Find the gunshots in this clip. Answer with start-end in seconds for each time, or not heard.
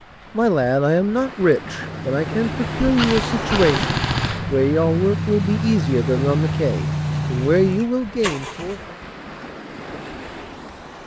2.8-4.5.